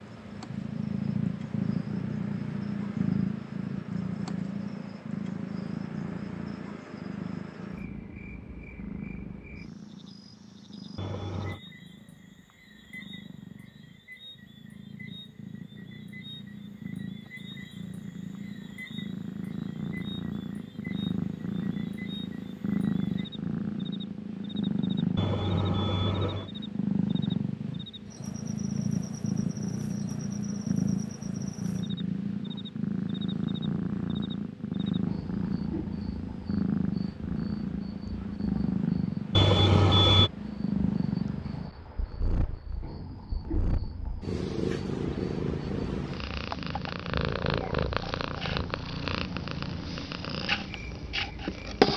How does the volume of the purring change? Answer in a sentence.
The volume of the purring goes down, then up.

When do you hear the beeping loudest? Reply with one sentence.
The loudest moment of the beeping is at 40 seconds.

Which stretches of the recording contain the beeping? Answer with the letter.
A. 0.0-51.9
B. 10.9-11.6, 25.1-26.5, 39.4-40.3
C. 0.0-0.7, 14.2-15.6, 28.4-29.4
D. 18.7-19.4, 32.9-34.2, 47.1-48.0
B.